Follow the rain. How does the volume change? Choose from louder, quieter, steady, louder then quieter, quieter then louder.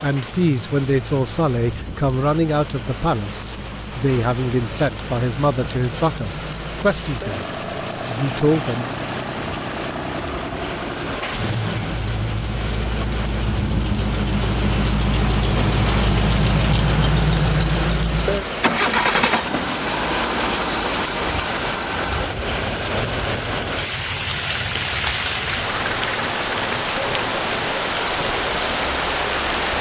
louder.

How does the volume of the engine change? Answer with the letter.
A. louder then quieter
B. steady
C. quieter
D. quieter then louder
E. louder
A.